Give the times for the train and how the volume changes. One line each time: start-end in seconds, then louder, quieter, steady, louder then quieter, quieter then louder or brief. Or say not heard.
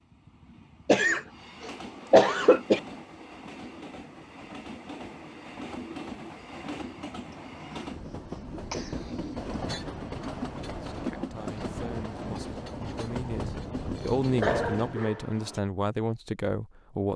0.1-15.1 louder.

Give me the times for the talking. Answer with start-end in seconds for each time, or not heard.
10.6-17.1.